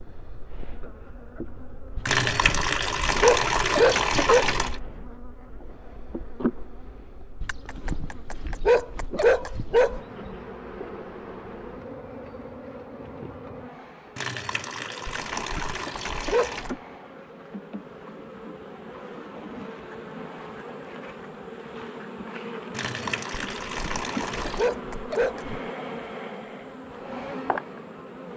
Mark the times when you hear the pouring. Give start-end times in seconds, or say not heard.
2.0-4.8, 14.2-16.8, 22.7-24.7.